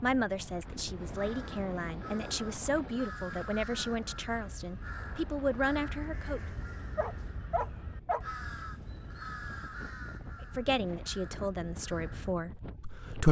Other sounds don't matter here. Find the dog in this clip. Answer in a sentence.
You can hear the dog from 7.0 to 8.2 s.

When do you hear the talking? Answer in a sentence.
You can hear the talking from 0.0 to 6.4 s and from 10.4 to 13.2 s.